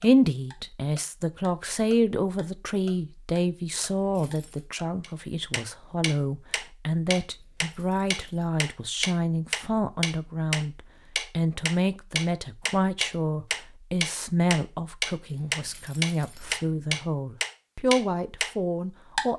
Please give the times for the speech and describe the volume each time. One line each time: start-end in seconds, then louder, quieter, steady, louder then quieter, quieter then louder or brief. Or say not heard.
0.0-19.3 steady.